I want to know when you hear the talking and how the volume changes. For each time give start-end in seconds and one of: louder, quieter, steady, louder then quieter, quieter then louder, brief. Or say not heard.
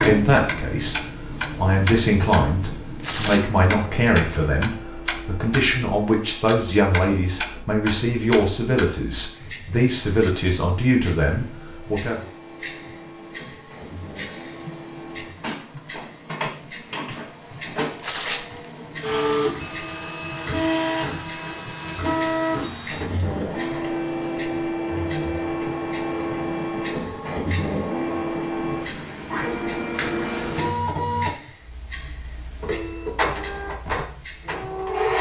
0.0-12.2 steady.